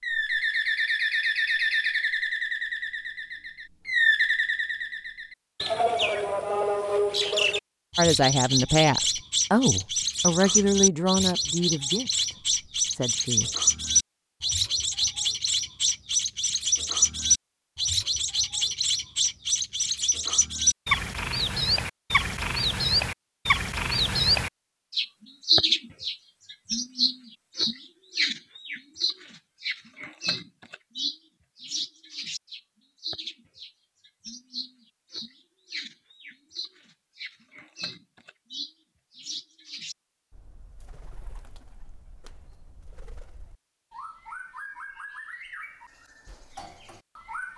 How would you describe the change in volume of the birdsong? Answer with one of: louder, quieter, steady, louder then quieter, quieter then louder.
quieter.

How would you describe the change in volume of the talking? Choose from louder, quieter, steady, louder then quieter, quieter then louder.
quieter.